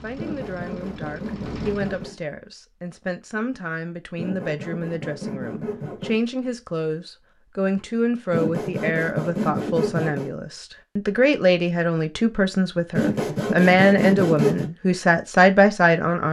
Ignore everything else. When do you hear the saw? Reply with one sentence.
You can hear the saw from 0.1 to 2.1 s, from 4.2 to 6.2 s, from 8.3 to 10.3 s and from 12.9 to 14.7 s.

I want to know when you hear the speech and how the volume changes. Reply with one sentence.
You can hear the speech from 0.0 to 16.2 s, getting louder.